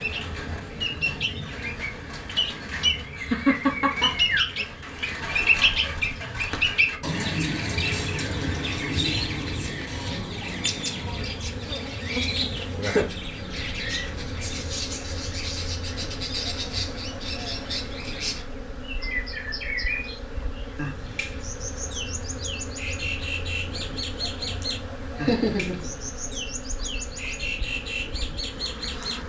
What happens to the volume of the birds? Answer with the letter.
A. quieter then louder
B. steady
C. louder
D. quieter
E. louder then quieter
D.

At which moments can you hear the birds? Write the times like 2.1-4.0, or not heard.
0.0-29.2.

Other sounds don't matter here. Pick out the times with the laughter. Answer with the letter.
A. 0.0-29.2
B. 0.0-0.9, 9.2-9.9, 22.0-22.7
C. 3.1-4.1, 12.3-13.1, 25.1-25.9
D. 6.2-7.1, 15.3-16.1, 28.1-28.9
C.